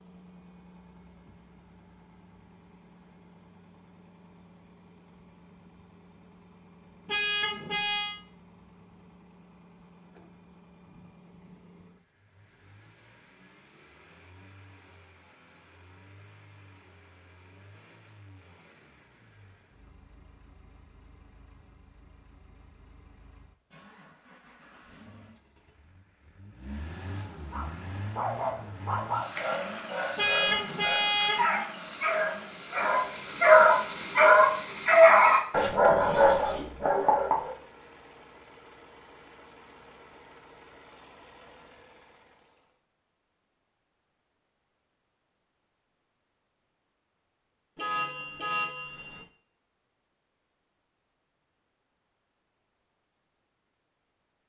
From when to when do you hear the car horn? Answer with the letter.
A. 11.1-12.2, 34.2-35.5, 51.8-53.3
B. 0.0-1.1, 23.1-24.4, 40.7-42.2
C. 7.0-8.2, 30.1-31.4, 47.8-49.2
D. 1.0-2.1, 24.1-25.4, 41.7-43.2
C.